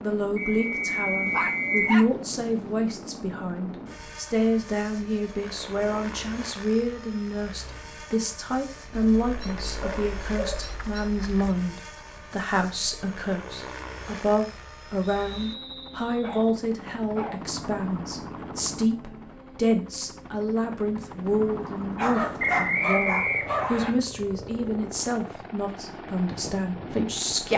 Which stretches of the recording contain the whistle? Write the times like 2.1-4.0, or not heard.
0.3-2.0, 15.0-16.5, 22.4-23.9.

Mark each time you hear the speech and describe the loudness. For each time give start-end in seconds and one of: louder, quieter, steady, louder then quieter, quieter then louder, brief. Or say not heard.
0.0-27.5 steady.